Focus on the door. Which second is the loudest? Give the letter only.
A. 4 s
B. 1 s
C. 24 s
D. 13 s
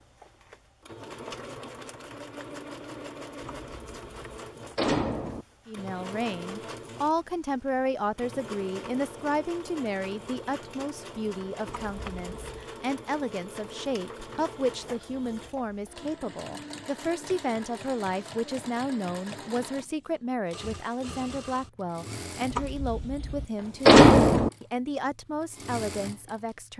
C.